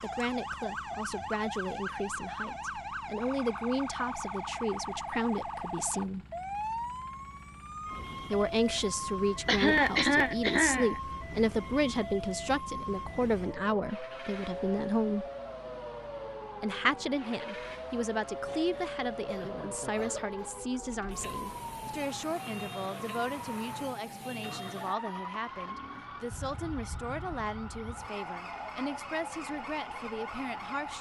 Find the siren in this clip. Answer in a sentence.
You can hear the siren from 0.0 to 30.9 s.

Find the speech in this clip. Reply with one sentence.
The speech can be heard from 0.0 to 6.2 s, from 8.3 to 15.2 s and from 16.6 to 30.9 s.